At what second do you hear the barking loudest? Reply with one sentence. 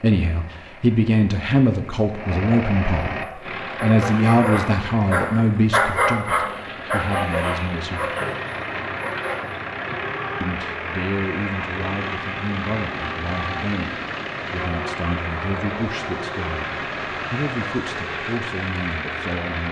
The loudest moment of the barking is at 6 seconds.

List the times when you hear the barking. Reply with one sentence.
The barking can be heard from 3.1 to 9.6 s.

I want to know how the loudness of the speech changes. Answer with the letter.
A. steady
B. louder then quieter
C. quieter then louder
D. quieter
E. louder
D.